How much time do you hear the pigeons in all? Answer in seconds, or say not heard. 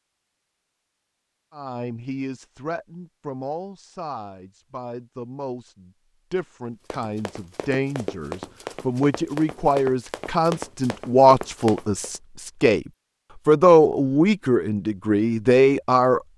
not heard.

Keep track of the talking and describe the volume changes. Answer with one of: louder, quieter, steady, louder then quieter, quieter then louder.
louder.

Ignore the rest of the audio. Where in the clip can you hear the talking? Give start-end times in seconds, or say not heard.
1.6-16.3.